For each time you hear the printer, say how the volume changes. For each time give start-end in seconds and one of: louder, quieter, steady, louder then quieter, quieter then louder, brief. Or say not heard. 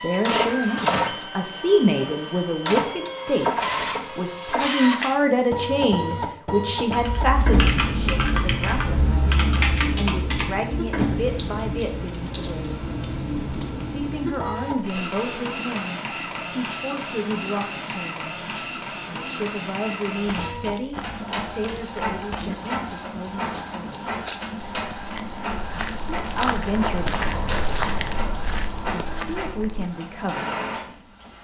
0.0-31.3 quieter.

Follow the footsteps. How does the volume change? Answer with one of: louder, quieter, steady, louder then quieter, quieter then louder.
louder.